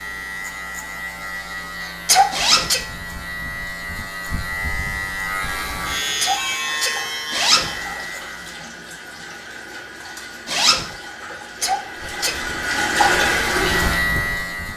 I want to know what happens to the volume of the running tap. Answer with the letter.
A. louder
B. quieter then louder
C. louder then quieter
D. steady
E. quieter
A.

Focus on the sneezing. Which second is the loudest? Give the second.
2 s.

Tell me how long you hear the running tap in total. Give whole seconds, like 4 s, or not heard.
9 s.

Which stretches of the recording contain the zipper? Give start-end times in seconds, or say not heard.
2.3-2.8, 7.3-7.8, 10.4-10.9.